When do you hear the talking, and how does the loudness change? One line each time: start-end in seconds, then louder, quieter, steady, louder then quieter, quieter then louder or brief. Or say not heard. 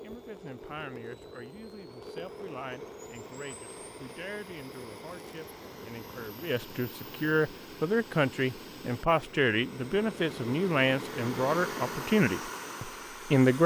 0.0-13.6 louder.